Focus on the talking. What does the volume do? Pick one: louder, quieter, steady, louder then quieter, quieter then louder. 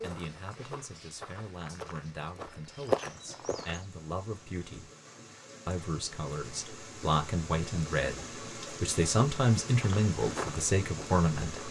louder.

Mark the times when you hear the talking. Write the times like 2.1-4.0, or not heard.
0.0-4.9, 5.7-11.6.